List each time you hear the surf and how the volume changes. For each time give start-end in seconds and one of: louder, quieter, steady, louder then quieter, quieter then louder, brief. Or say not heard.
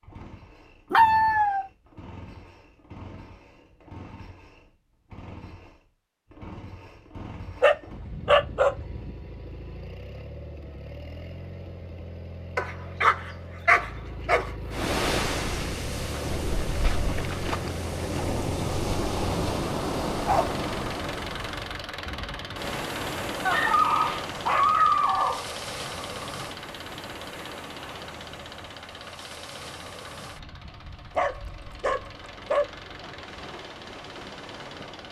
14.7-35.0 quieter.